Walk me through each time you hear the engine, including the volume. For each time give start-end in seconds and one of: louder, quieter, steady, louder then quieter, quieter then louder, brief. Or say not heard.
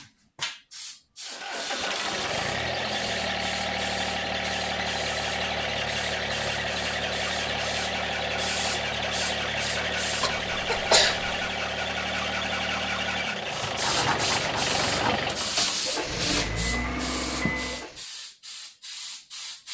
1.2-18.1 steady.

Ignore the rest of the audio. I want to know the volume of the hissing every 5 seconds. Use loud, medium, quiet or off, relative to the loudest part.
medium, medium, loud, loud.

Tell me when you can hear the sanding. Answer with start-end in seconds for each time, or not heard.
13.8-15.8.